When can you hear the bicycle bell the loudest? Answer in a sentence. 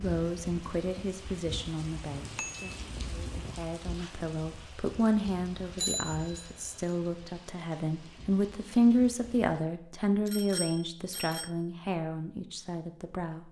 The loudest moment of the bicycle bell is at 6 seconds.